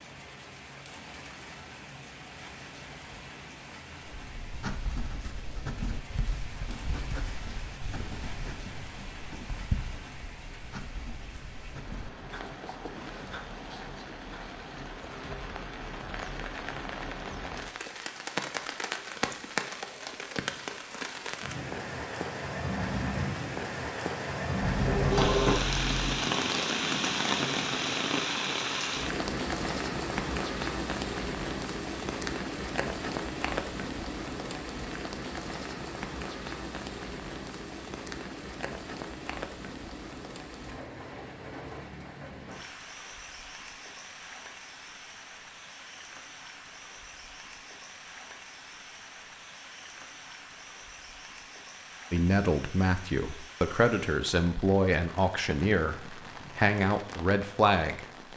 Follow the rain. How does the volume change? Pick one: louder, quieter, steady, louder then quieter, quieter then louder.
louder then quieter.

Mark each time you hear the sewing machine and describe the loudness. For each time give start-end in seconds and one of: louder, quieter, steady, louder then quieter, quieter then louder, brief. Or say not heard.
not heard.